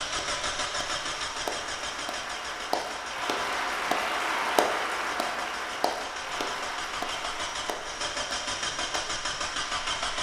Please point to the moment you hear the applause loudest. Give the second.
4 s.